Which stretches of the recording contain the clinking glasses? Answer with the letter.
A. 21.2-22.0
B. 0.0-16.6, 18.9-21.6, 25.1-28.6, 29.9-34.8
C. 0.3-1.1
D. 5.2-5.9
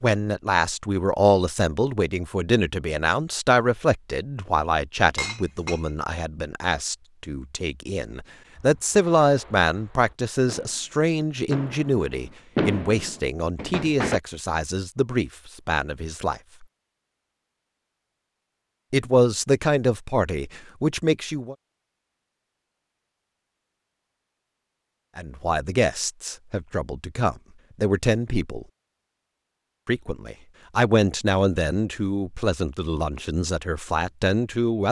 D.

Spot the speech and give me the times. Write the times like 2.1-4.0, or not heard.
0.0-16.6, 18.9-21.6, 25.1-28.6, 29.9-34.8.